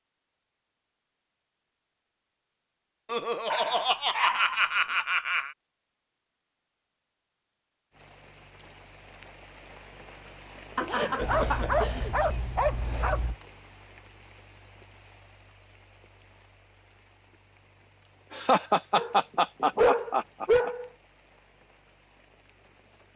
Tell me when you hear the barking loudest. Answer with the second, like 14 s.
20 s.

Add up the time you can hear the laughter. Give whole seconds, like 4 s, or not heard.
6 s.